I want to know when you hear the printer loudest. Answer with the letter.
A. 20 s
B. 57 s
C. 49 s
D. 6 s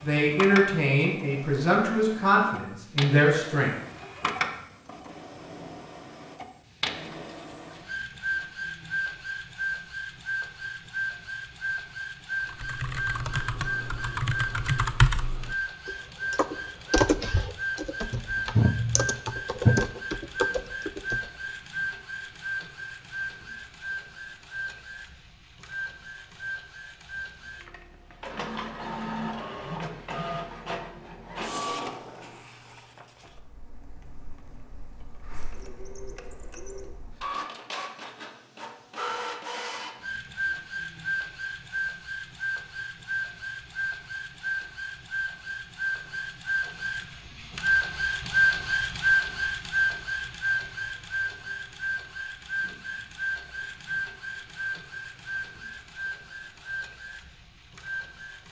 C.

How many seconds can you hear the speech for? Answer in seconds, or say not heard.
4 s.